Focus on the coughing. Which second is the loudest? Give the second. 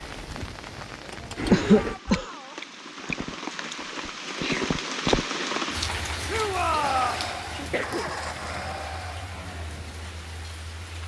2 s.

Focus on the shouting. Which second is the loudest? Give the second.
7 s.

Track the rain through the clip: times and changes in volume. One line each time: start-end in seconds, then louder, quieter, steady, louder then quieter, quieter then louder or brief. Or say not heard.
0.0-11.0 louder then quieter.